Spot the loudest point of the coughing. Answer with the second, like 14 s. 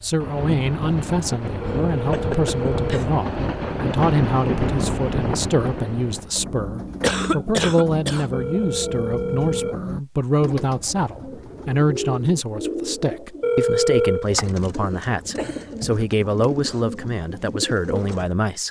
7 s.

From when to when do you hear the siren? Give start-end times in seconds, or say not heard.
not heard.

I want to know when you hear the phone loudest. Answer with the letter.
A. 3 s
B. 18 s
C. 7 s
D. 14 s
D.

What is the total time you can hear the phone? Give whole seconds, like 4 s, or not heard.
4 s.